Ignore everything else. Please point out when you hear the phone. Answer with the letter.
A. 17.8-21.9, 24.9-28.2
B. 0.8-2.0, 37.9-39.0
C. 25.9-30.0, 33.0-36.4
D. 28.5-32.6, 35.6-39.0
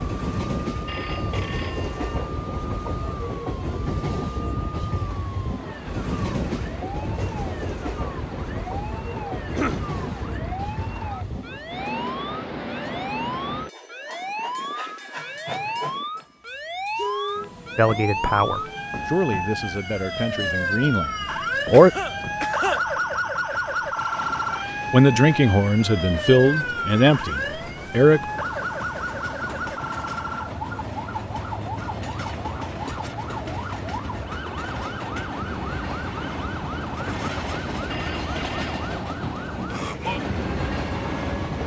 B.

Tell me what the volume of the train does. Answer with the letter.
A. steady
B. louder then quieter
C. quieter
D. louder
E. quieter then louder
E.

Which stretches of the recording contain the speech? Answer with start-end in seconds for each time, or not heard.
17.8-21.9, 24.9-28.2.